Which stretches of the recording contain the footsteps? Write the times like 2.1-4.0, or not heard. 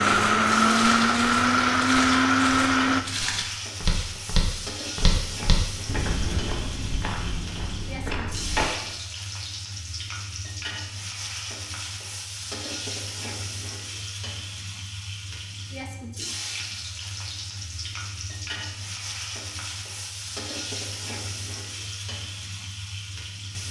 0.0-8.8.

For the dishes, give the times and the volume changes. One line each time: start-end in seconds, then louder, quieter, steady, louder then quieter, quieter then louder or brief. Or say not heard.
not heard.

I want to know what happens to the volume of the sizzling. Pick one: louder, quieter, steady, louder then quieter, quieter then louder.
steady.